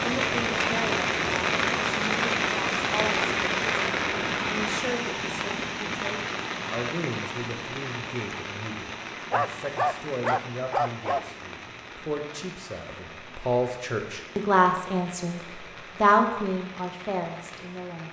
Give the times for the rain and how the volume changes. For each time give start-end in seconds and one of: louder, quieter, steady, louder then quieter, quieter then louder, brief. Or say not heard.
0.0-18.0 quieter.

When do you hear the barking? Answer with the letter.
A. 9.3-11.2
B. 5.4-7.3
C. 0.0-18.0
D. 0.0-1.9
A.